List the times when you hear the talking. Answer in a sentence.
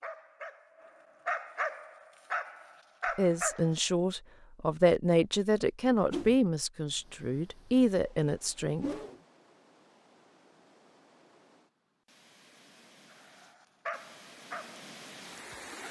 The talking can be heard from 3.1 to 8.8 s.